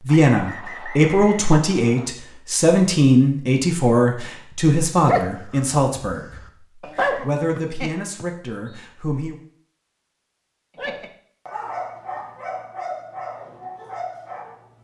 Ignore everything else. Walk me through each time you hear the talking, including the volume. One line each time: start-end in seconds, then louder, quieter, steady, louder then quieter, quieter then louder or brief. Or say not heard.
0.0-9.3 quieter.